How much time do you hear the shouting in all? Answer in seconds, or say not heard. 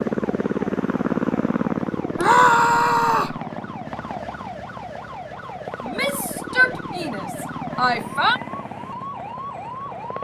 4 s.